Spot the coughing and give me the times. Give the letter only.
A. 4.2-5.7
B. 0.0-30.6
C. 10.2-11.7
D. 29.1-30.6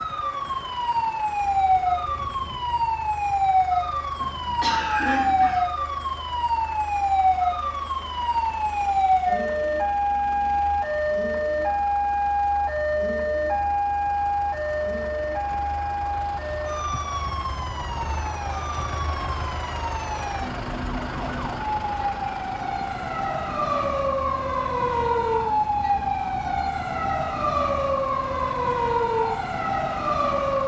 A.